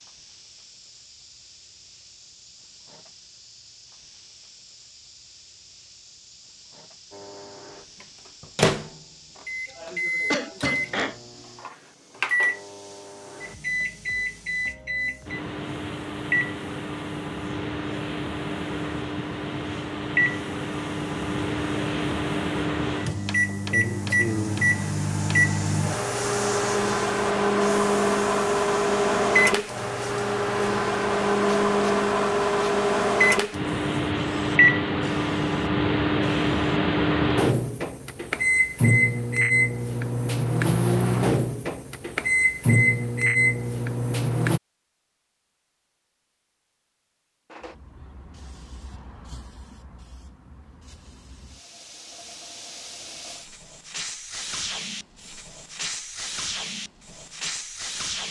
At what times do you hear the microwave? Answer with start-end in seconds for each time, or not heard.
7.1-44.6.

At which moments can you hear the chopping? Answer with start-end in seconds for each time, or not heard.
not heard.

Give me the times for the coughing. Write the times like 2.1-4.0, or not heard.
9.7-11.2.